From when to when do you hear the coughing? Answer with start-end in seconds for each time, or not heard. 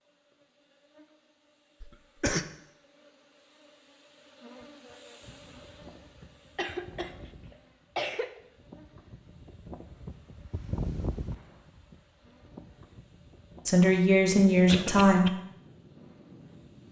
1.8-2.5, 6.5-8.4, 14.7-15.3.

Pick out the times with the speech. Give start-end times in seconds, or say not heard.
13.7-15.3.